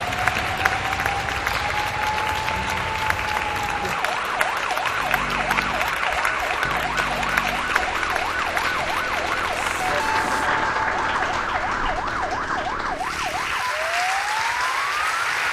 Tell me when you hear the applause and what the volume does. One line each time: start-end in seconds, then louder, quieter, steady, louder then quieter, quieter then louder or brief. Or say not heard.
0.0-15.4 steady.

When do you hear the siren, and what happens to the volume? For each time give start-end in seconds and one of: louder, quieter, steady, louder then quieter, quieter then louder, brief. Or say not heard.
0.0-15.4 steady.